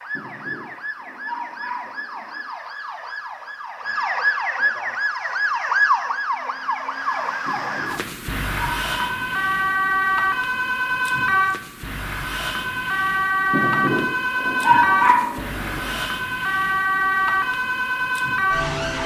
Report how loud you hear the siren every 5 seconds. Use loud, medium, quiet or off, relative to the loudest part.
medium, loud, loud, loud.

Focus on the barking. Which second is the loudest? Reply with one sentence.
The volume of the barking peaks at 15 seconds.